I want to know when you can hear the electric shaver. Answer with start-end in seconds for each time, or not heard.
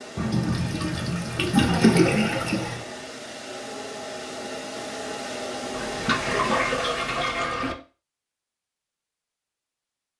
not heard.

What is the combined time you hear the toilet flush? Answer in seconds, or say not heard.
5 s.